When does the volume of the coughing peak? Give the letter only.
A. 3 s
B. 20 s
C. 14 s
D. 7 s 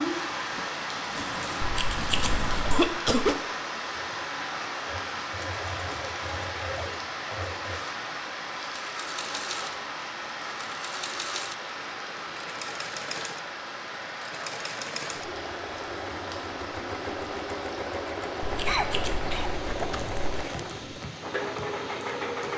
A.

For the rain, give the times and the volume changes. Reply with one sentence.
You can hear the rain from 0.0 to 22.5 s, getting quieter.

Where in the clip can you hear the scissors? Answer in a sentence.
You can hear the scissors from 1.6 to 2.8 s and from 18.4 to 20.4 s.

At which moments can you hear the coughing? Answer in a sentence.
The coughing can be heard from 2.7 to 3.4 s and from 18.6 to 20.6 s.